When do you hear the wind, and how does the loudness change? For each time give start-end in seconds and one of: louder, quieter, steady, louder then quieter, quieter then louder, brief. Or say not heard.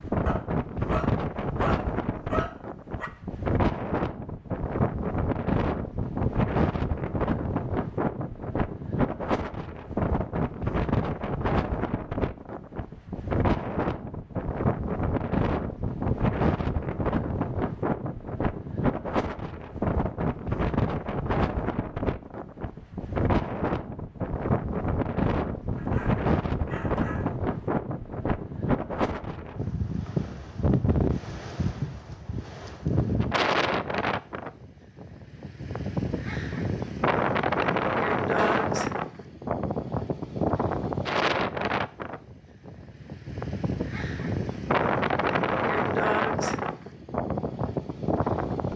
0.0-48.7 steady.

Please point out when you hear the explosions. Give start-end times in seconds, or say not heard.
38.4-38.8.